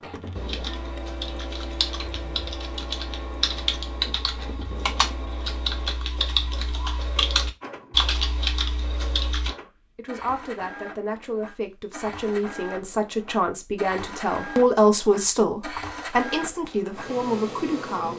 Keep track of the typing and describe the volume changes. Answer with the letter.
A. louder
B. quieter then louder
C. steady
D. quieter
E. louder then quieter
A.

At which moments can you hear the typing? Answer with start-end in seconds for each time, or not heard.
0.3-9.5.